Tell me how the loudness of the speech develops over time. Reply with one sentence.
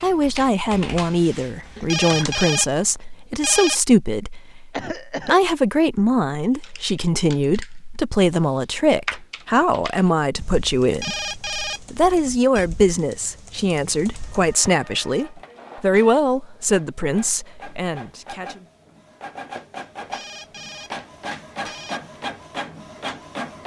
The loudness of the speech stays about the same.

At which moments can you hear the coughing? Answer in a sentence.
The coughing can be heard from 4.7 to 5.4 s.